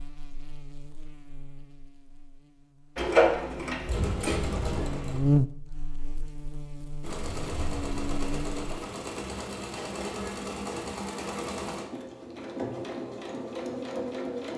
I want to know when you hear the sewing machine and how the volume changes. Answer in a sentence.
The sewing machine can be heard briefly from 3.0 to 5.2 s; and from 7.0 to 14.5 s, at a steady volume.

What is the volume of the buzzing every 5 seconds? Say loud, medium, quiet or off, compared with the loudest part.
quiet, loud, off.